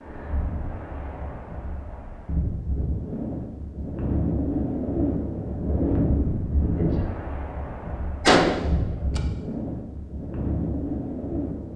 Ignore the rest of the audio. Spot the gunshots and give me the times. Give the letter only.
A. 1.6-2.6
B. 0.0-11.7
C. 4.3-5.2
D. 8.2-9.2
D.